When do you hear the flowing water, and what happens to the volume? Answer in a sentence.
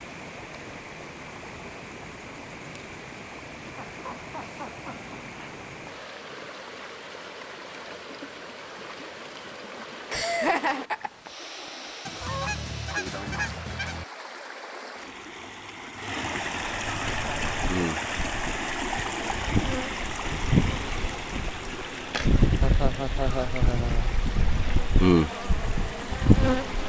The flowing water can be heard from 0.0 to 26.8 s, getting louder then quieter.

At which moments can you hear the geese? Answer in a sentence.
You can hear the geese from 12.1 to 14.1 s.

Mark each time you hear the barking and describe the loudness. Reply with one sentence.
The barking can't be heard in this clip.